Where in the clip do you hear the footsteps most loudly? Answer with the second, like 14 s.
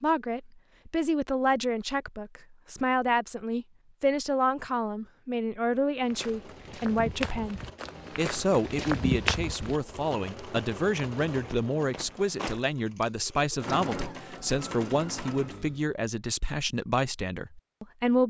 9 s.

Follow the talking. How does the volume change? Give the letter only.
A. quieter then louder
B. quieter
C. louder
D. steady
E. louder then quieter
D.